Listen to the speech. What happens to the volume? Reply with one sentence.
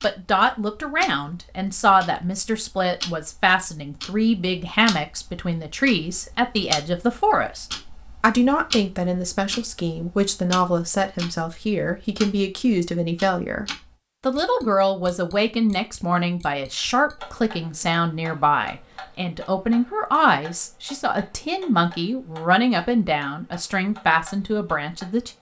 The loudness of the speech stays about the same.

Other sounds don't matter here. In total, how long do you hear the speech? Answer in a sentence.
The speech can be heard for 25 seconds in total.